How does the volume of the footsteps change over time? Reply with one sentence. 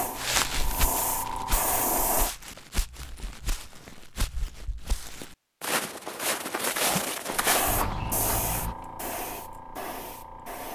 The loudness of the footsteps goes down, then up.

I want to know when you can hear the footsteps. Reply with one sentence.
The footsteps can be heard from 0.1 to 8.8 s.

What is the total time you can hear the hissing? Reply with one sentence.
You can hear the hissing for 6 seconds altogether.